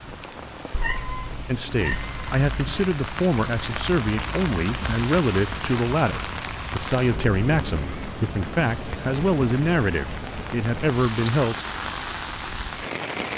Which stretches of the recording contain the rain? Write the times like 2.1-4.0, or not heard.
0.0-13.3.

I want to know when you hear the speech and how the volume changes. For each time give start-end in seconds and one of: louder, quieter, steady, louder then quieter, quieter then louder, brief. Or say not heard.
1.4-11.7 steady.